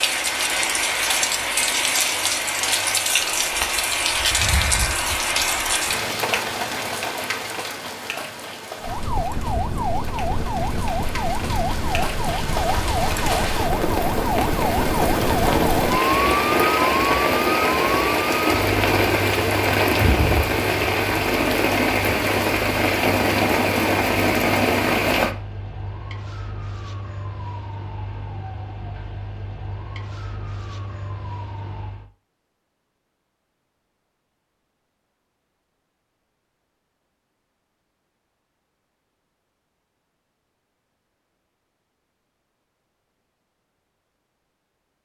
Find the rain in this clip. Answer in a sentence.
You can hear the rain from 0.0 to 25.4 s.